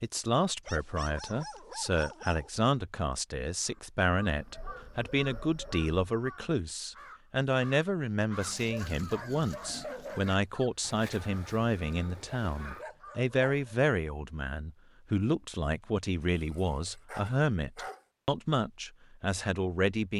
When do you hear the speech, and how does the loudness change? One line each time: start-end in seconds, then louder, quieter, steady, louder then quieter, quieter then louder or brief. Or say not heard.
0.0-20.1 steady.